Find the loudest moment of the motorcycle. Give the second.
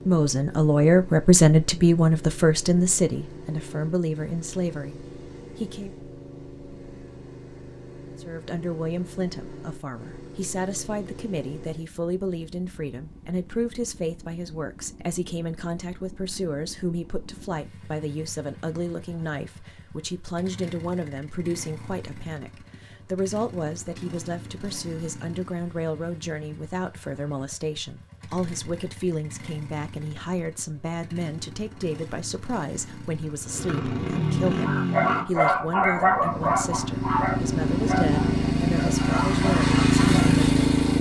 40 s.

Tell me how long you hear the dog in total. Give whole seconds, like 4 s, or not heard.
6 s.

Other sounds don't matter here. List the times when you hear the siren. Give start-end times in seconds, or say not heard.
not heard.